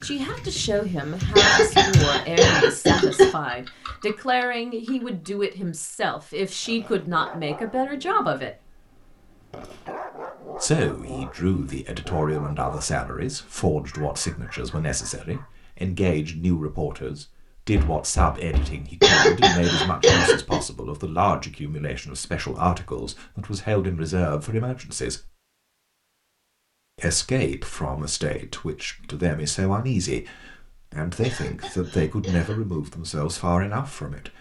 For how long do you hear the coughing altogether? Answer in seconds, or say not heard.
5 s.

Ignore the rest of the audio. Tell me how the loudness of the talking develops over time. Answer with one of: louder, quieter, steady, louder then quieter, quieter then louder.
steady.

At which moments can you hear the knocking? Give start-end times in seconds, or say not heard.
17.8-18.8.